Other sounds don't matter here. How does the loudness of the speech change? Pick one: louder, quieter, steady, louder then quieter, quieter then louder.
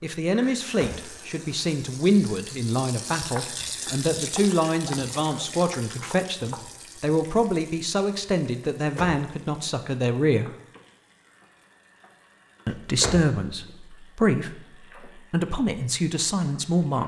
steady.